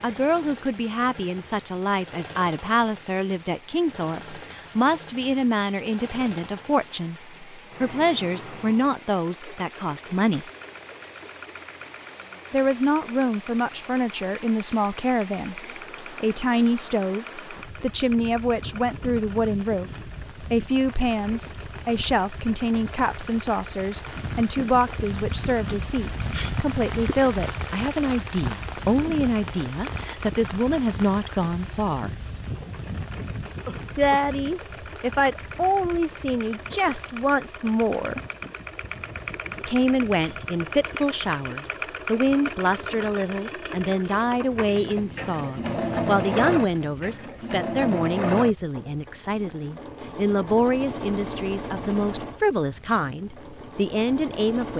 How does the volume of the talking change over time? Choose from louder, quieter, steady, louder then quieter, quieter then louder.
steady.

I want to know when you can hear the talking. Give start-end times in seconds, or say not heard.
0.0-10.4, 12.5-32.1, 34.0-38.2, 39.6-54.7.